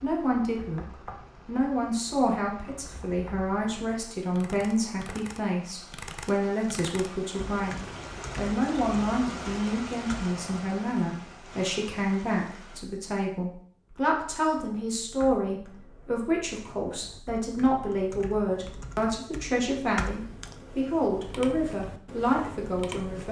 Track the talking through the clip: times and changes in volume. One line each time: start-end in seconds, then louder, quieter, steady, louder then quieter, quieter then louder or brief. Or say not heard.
0.0-23.2 steady.